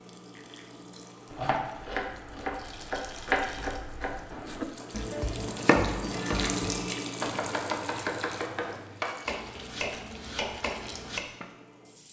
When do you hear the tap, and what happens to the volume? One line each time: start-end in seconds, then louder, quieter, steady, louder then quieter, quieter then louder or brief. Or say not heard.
0.0-12.0 louder then quieter.